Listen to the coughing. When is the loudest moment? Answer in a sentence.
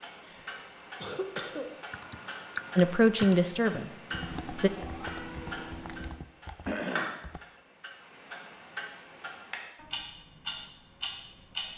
The loudest moment of the coughing is at 7 seconds.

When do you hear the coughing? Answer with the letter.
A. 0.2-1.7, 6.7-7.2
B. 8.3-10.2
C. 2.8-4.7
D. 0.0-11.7
A.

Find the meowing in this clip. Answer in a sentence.
The meowing can be heard from 4.1 to 6.1 s.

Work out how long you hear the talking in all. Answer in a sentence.
You can hear the talking for 2 seconds altogether.